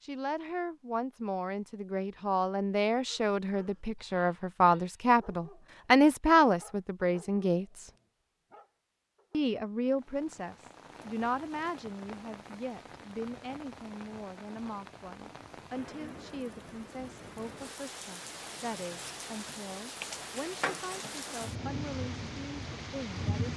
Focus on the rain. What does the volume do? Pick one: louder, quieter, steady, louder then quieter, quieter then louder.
louder.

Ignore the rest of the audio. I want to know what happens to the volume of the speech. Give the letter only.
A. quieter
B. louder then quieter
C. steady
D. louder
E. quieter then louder
B.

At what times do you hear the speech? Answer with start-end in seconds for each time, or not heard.
0.0-7.9, 9.3-23.5.